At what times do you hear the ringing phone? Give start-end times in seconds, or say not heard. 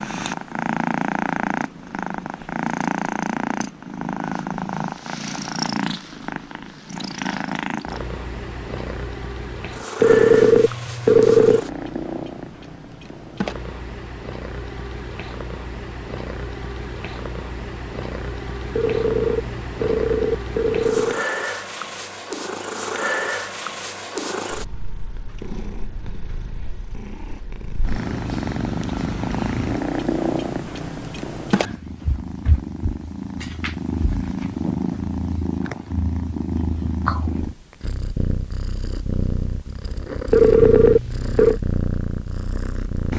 10.0-11.6, 18.8-21.2, 40.3-41.6.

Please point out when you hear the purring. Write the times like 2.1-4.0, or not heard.
0.0-43.1.